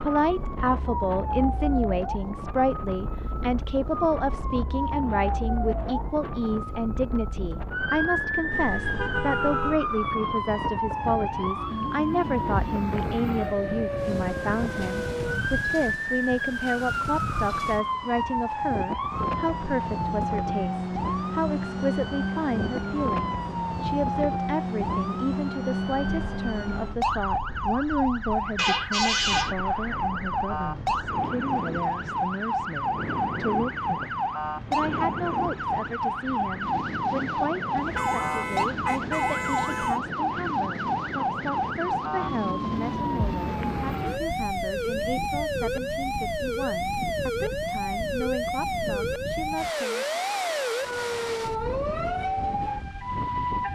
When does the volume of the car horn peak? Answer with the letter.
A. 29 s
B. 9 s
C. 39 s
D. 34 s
A.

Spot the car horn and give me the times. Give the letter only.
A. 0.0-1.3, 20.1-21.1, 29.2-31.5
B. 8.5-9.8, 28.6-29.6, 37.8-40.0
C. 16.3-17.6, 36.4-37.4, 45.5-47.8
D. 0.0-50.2
B.